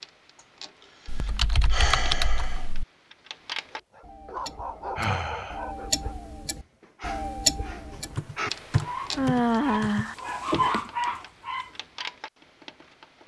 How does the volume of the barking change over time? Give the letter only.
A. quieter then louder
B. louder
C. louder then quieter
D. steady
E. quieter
A.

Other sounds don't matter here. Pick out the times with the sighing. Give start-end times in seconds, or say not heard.
1.7-2.6, 5.0-5.6, 9.2-10.2.